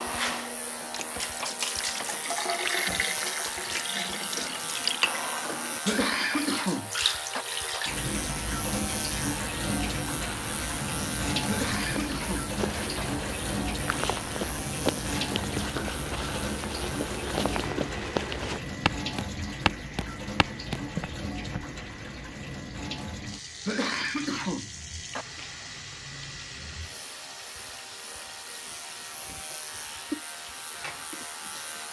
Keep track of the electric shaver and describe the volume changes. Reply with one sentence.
The volume of the electric shaver goes down.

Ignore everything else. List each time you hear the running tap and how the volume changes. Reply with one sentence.
You can hear the running tap from 0.0 to 31.8 s, getting quieter.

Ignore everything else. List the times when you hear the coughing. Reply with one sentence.
The coughing can be heard from 5.8 to 7.5 s, from 11.4 to 13.1 s and from 23.6 to 25.2 s.